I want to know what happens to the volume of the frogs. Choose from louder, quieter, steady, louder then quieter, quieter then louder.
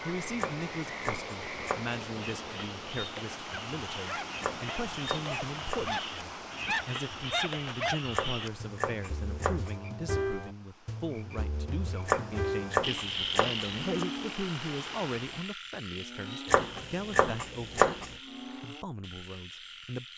louder then quieter.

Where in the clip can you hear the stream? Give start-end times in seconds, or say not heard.
0.0-15.6.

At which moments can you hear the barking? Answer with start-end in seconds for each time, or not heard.
3.5-8.0.